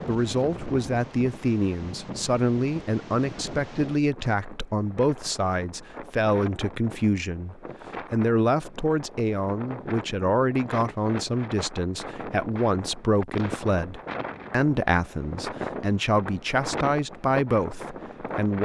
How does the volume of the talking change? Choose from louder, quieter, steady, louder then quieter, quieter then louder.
steady.